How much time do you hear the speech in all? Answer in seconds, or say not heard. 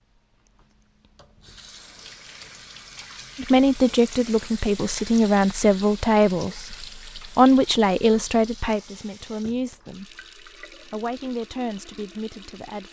9 s.